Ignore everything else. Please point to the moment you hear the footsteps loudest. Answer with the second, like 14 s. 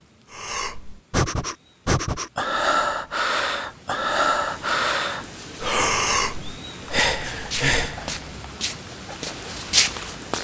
10 s.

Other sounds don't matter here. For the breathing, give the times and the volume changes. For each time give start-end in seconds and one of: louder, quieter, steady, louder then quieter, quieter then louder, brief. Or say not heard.
0.3-8.2 steady.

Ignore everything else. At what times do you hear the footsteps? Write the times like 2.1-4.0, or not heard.
6.8-10.3.